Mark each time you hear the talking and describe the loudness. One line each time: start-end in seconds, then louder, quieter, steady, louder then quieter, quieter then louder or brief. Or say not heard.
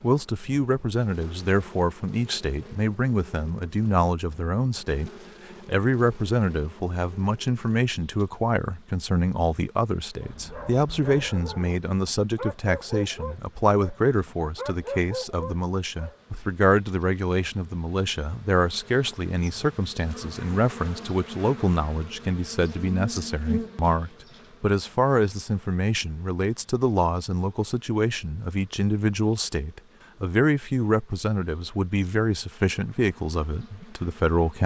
0.0-34.6 steady.